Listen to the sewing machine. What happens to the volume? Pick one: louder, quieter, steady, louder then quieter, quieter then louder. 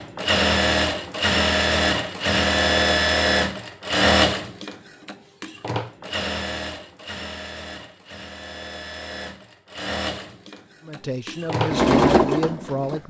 quieter then louder.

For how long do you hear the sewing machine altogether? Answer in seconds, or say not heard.
13 s.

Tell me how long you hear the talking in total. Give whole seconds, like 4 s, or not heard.
2 s.